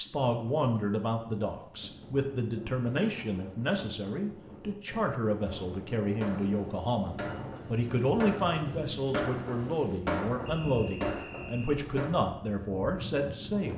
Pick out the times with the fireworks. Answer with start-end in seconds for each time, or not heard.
6.2-12.2.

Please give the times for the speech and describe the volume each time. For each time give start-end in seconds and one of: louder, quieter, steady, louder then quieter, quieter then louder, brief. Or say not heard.
0.0-13.7 steady.